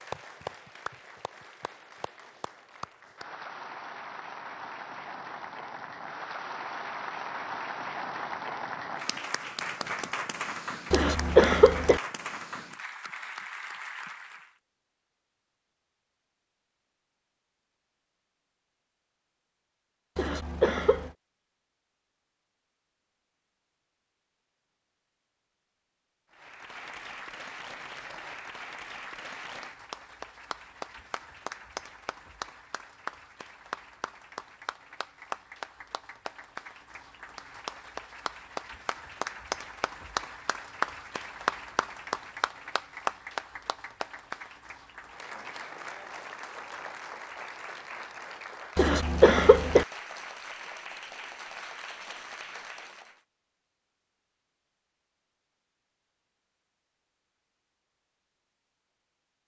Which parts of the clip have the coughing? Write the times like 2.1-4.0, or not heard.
10.9-12.0, 20.1-21.1, 48.8-49.9.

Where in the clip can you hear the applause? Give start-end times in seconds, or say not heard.
0.0-14.5, 26.3-53.2.